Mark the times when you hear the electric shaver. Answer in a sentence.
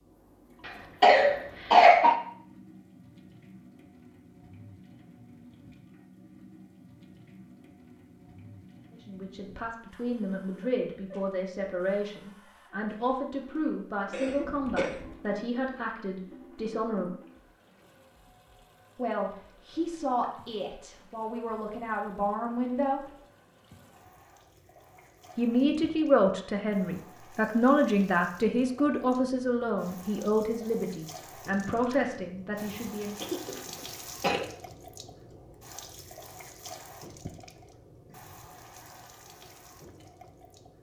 You can't hear the electric shaver here.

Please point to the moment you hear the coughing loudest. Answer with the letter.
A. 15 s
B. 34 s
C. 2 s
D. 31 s
C.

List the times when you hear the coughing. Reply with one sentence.
The coughing can be heard from 0.7 to 2.1 s, from 14.1 to 15.2 s and from 33.2 to 34.5 s.